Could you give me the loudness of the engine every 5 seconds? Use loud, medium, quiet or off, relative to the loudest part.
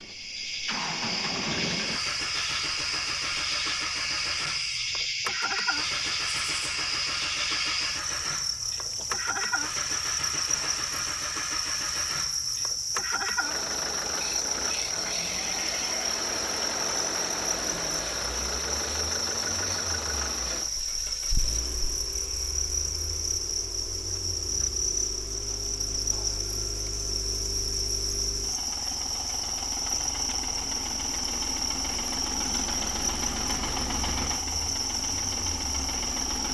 loud, loud, loud, loud, medium, medium, loud, loud.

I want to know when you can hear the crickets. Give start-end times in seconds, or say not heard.
0.0-36.4.